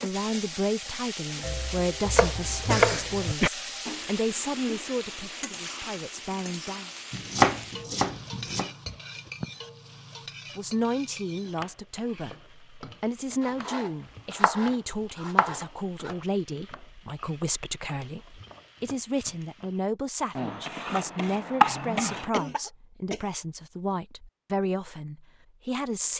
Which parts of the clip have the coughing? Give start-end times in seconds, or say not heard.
2.1-3.5, 8.8-9.5, 22.3-23.2.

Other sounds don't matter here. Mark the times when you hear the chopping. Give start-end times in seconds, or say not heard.
1.4-3.4, 7.1-8.7, 13.4-16.1, 20.4-22.3.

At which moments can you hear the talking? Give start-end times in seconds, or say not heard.
0.0-6.9, 10.6-26.1.